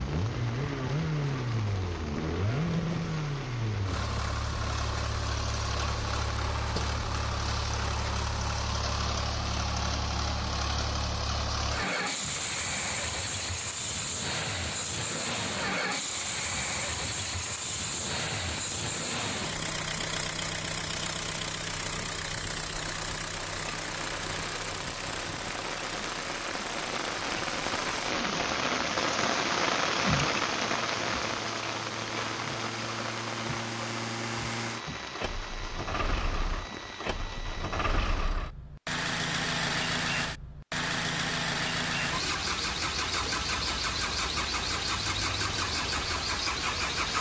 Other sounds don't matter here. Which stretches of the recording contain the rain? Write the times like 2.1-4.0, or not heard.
0.0-38.3.